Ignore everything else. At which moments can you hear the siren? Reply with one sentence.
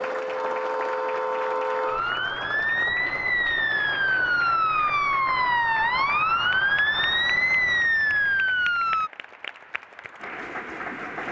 You can hear the siren from 0.0 to 9.1 s.